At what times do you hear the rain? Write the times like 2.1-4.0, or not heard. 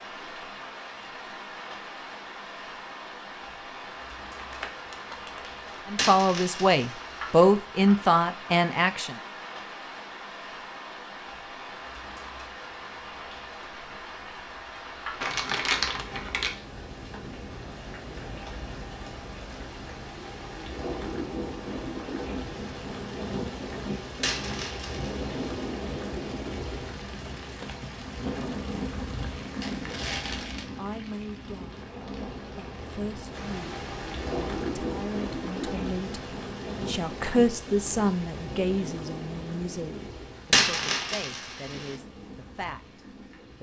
0.0-43.5.